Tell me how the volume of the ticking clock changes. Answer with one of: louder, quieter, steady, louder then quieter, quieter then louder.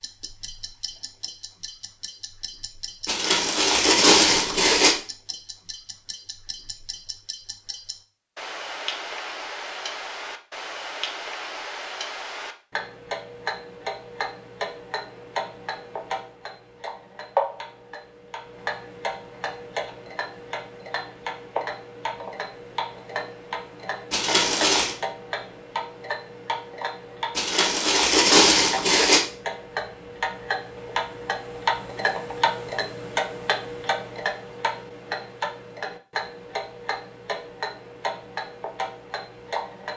louder.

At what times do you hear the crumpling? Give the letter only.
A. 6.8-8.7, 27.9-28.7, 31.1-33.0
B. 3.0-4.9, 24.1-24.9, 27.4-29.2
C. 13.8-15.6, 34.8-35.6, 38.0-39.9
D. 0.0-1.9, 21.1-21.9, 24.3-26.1
B.